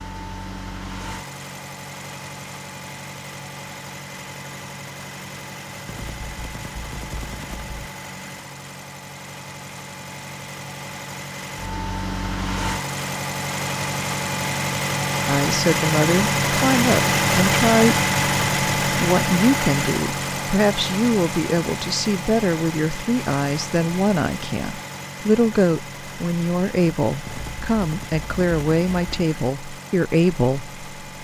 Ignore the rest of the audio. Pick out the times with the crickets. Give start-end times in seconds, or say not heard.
not heard.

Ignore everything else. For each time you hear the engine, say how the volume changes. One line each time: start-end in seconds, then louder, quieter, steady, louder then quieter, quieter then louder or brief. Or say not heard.
0.0-31.1 louder then quieter.